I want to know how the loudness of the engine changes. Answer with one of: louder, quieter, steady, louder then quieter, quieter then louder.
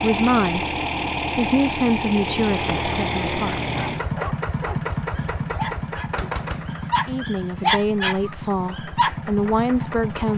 quieter.